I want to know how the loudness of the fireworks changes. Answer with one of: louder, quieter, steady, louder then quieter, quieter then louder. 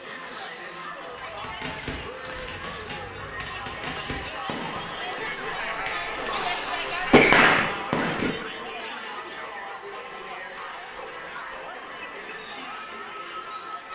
louder.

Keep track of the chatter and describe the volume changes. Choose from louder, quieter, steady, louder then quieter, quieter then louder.
louder then quieter.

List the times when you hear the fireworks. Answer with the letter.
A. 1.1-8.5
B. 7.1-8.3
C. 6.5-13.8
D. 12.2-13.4
A.